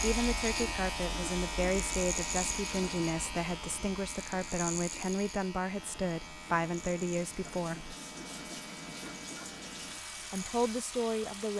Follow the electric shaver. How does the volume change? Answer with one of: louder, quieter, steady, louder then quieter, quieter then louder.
quieter.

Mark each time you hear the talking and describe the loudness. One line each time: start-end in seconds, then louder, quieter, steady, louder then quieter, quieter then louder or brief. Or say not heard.
0.0-8.0 steady
10.3-11.5 brief.